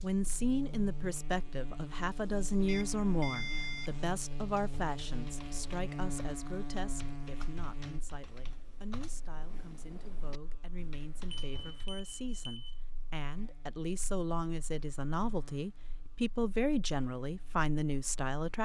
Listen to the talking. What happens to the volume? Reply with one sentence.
The loudness of the talking goes down, then up.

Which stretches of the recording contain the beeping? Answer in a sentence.
You can hear the beeping from 2.6 to 4.2 s and from 11.2 to 12.8 s.